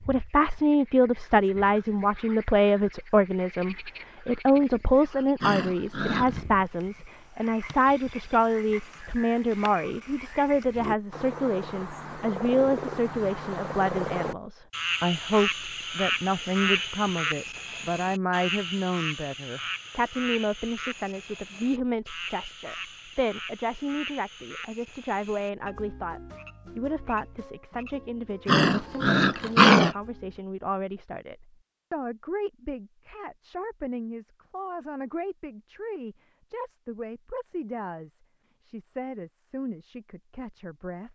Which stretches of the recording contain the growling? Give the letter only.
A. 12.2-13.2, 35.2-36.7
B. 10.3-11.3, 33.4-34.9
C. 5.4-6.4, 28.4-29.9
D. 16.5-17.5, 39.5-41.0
C.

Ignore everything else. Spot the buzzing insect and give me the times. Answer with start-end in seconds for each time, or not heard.
not heard.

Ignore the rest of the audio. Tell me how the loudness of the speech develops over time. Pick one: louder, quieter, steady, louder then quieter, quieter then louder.
quieter.